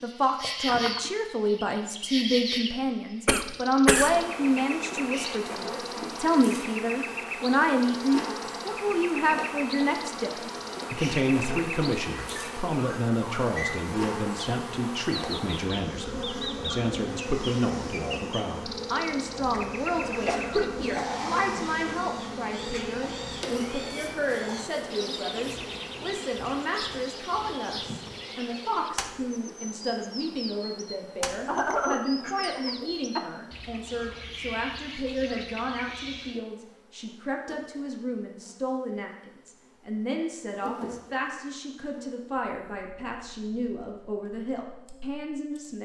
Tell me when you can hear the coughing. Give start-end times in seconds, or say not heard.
3.2-4.2, 19.5-21.8, 31.2-33.2.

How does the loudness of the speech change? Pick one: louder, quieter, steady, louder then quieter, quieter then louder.
quieter.